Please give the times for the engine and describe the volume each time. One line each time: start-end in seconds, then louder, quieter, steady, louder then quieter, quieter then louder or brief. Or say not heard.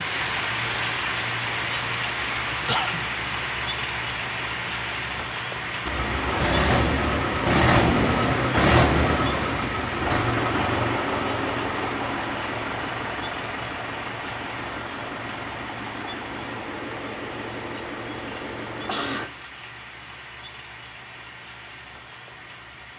5.8-19.3 quieter.